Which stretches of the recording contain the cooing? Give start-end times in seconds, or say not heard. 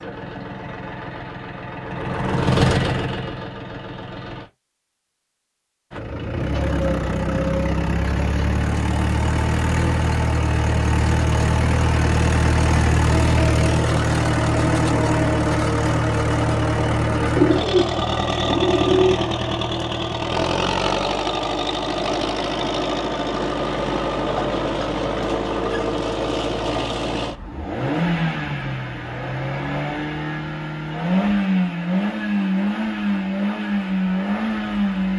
17.4-19.2.